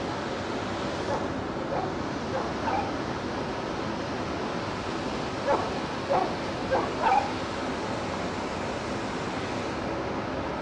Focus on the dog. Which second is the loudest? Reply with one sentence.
The volume of the dog peaks at 7 seconds.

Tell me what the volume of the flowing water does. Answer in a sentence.
The loudness of the flowing water stays about the same.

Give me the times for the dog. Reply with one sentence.
The dog can be heard from 1.1 to 2.9 s and from 5.5 to 7.2 s.